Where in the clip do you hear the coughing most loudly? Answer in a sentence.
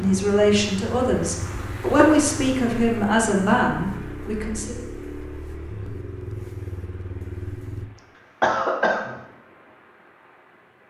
The volume of the coughing peaks at 9 seconds.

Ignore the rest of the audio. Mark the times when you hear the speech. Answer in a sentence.
You can hear the speech from 0.0 to 4.8 s.